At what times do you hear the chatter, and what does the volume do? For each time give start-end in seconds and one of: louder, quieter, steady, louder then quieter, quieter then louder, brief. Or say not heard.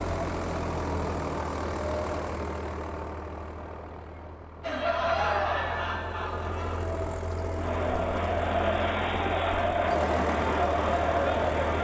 4.6-11.7 quieter then louder.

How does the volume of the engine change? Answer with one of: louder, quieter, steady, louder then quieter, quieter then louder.
quieter then louder.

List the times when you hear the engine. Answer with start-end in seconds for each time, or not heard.
0.0-11.7.